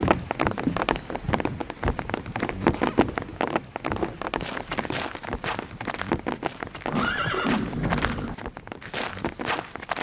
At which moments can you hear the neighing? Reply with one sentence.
The neighing can be heard from 6.8 to 8.3 s.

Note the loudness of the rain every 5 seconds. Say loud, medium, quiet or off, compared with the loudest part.
loud, medium.